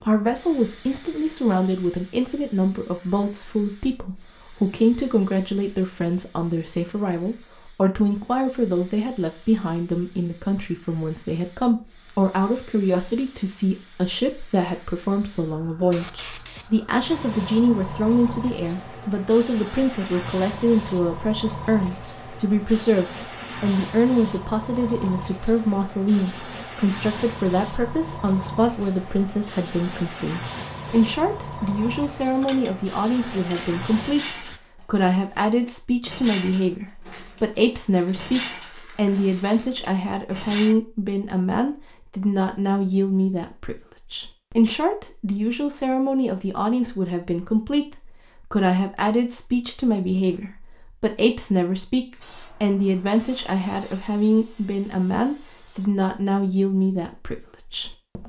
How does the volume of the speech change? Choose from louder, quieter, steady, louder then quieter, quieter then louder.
steady.